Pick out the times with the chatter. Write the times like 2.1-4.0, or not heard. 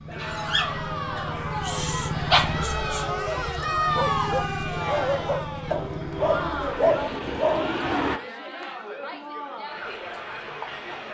0.1-11.1.